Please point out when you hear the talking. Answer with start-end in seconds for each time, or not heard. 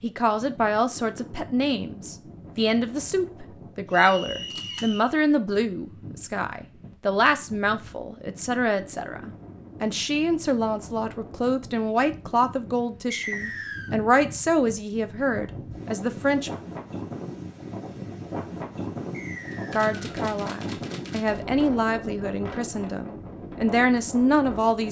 0.0-16.5, 19.7-24.8.